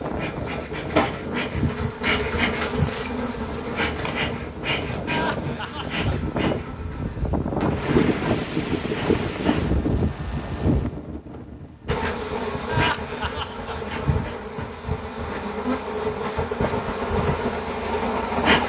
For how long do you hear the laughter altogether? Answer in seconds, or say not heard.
2 s.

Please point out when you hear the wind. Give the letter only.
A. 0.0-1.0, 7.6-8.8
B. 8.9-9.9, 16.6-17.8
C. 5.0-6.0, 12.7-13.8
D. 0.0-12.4
D.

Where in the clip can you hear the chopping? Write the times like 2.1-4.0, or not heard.
not heard.